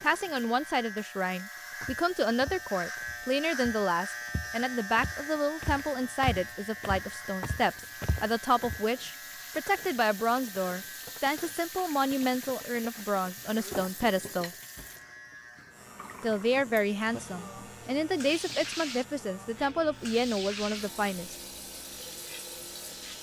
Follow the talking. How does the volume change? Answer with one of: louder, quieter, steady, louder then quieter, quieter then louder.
steady.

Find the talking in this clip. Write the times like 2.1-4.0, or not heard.
0.0-14.5, 16.2-21.4.